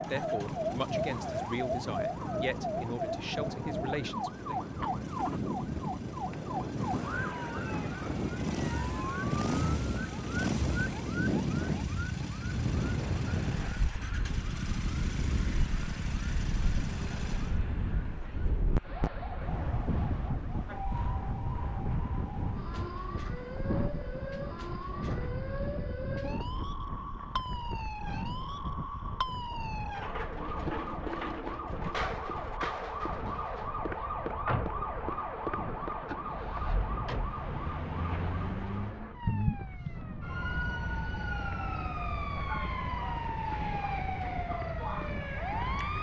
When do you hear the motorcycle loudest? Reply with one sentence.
The loudest moment of the motorcycle is at 10 seconds.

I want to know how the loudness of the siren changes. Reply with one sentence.
The loudness of the siren goes down, then up.